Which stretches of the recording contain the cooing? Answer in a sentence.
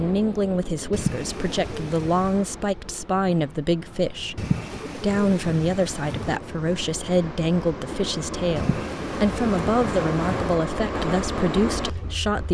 The cooing can be heard from 0.9 to 2.5 s, from 4.3 to 6.4 s and from 8.6 to 10.6 s.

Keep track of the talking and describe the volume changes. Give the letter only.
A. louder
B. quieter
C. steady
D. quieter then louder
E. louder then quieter
C.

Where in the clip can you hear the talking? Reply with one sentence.
You can hear the talking from 0.0 to 12.4 s.